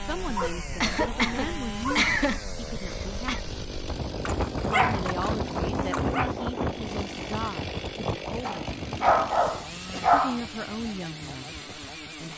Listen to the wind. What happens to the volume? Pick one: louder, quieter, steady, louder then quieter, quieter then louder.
louder then quieter.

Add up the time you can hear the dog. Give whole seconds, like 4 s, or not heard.
6 s.